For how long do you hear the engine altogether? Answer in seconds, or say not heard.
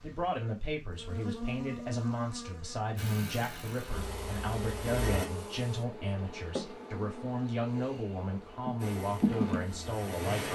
4 s.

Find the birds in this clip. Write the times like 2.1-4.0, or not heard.
not heard.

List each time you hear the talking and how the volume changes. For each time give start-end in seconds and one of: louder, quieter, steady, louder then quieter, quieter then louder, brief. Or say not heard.
0.0-10.5 steady.